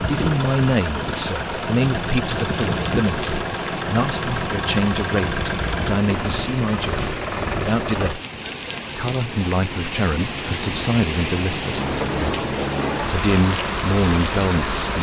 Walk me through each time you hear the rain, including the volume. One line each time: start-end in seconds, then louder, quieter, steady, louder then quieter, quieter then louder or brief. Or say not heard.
0.0-14.9 louder.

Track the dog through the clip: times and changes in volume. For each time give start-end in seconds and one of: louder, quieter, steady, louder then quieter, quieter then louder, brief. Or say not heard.
not heard.